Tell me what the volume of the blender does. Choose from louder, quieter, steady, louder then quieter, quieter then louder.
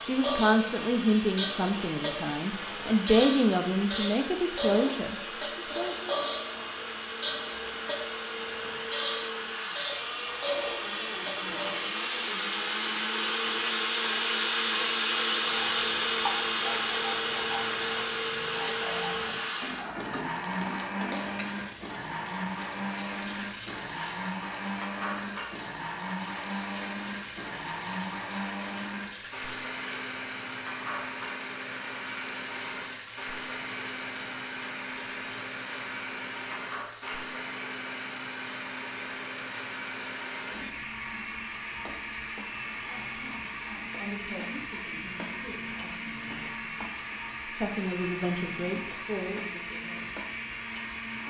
louder then quieter.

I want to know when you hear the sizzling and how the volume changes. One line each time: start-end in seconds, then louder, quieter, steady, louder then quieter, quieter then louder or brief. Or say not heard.
0.0-51.2 quieter.